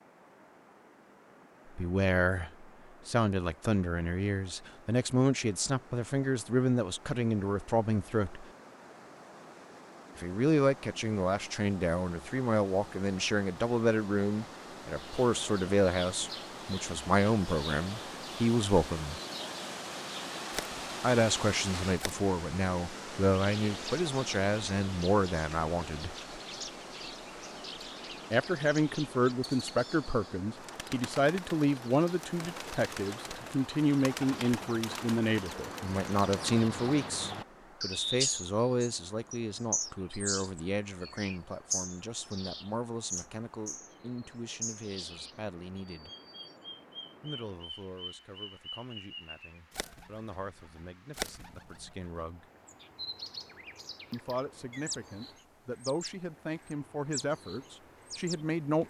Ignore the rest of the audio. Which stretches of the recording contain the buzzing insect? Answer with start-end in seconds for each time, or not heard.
not heard.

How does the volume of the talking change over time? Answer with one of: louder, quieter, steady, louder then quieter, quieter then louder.
quieter.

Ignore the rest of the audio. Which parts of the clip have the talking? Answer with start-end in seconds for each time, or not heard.
1.8-8.4, 10.2-19.2, 21.0-26.1, 28.3-46.1, 47.2-52.5, 54.1-58.8.